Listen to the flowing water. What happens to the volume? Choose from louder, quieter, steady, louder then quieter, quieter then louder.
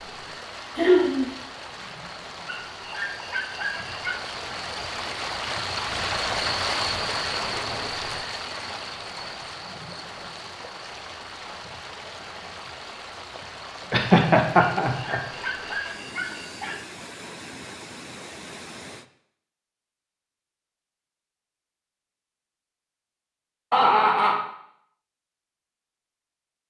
louder then quieter.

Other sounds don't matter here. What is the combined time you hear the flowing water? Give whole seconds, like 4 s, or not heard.
19 s.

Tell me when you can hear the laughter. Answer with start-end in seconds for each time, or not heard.
0.8-1.4, 13.9-15.2, 23.7-24.4.